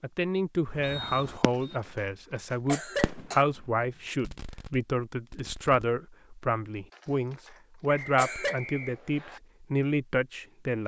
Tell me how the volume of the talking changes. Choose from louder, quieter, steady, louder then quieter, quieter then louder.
steady.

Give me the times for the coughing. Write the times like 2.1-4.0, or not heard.
1.4-3.5, 6.9-8.6.